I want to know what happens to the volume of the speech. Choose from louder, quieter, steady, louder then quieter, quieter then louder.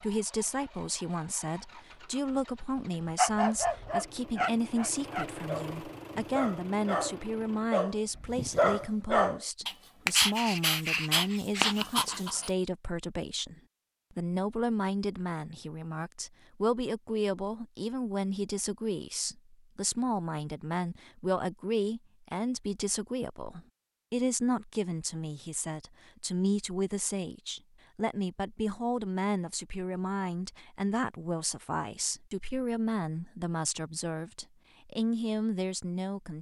steady.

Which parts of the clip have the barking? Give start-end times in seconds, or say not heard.
3.1-12.5.